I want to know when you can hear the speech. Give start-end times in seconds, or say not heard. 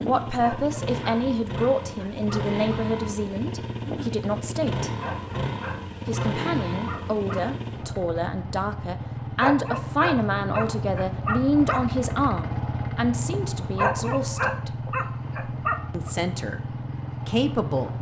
0.0-4.9, 6.0-14.8, 15.9-16.6, 17.2-17.9.